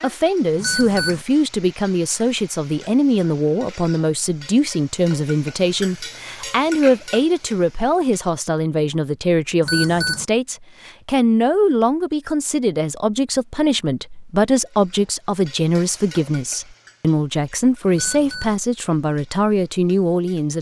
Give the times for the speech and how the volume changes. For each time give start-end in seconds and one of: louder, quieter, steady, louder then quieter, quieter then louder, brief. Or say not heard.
0.0-20.5 steady.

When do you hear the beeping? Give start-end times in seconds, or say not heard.
0.6-1.2, 9.6-10.2, 17.9-18.6.